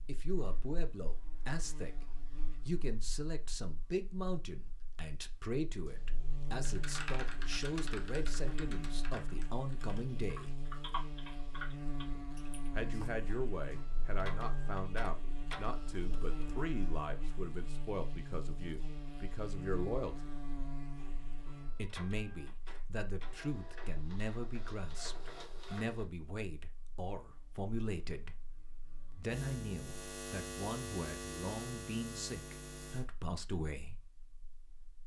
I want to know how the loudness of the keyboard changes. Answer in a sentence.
The volume of the keyboard goes down, then up.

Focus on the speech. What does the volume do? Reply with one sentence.
The loudness of the speech stays about the same.